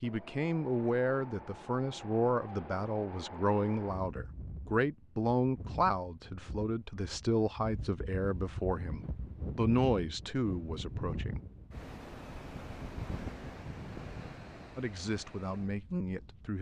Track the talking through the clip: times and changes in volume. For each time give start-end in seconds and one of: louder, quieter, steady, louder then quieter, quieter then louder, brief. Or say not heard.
0.0-11.4 steady
14.8-16.5 brief.